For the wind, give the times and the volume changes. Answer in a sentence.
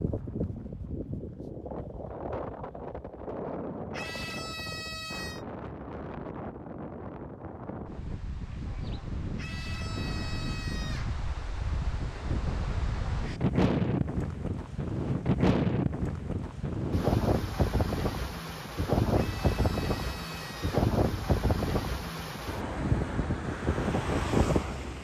You can hear the wind from 0.0 to 24.9 s, getting louder.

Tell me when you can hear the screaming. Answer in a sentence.
The screaming can be heard from 3.9 to 5.5 s, from 9.3 to 11.2 s and from 19.1 to 20.9 s.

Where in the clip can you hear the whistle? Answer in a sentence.
You can't hear the whistle here.